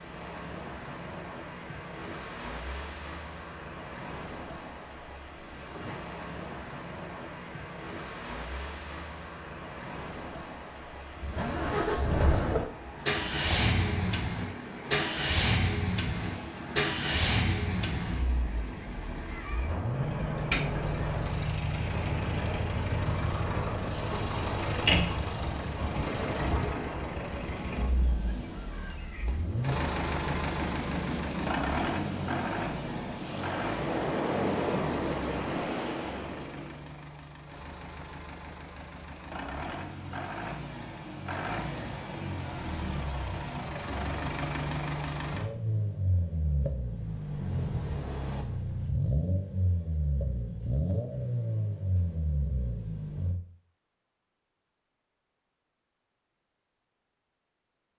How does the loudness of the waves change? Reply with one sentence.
The loudness of the waves goes up.